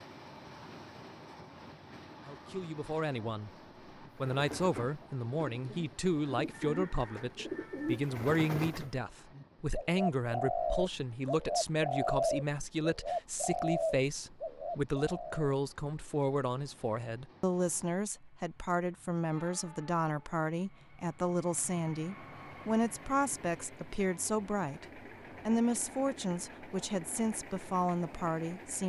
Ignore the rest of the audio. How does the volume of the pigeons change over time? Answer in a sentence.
The volume of the pigeons goes up.